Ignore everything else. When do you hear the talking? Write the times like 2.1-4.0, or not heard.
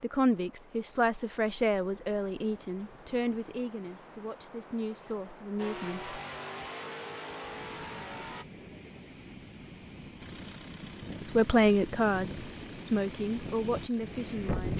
0.0-6.2, 11.2-14.7.